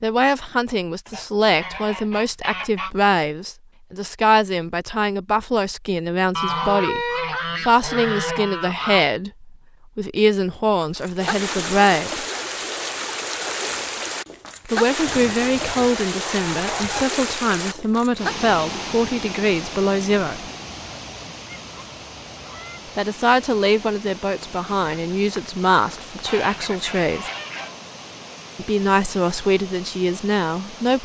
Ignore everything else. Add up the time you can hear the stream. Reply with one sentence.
The stream can be heard for 20 seconds in total.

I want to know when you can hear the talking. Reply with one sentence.
You can hear the talking from 0.0 to 12.2 s, from 14.7 to 20.4 s, from 22.9 to 27.3 s and from 28.6 to 31.0 s.